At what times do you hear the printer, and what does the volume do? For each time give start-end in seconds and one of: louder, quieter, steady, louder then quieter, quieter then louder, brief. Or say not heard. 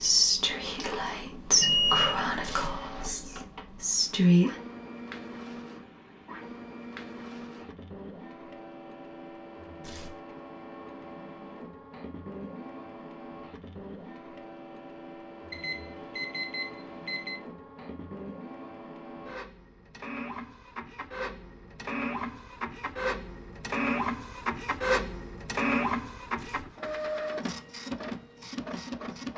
0.0-29.3 louder.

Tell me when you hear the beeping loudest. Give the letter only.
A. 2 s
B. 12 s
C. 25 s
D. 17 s
A.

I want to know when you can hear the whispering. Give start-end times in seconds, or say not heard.
0.0-4.5.